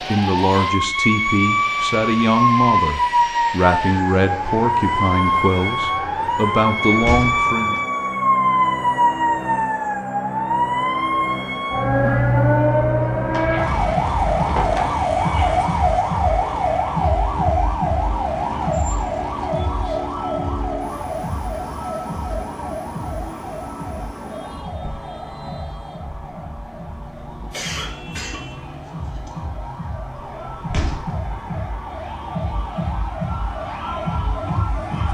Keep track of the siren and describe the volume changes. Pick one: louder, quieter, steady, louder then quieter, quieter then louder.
quieter.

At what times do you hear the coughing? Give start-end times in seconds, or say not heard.
11.6-12.2, 27.5-29.3.